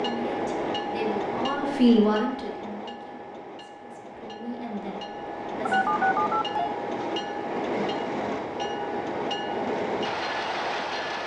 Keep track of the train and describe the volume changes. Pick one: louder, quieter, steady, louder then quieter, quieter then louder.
quieter then louder.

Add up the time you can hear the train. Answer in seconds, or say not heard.
11 s.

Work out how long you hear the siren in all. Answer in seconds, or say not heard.
not heard.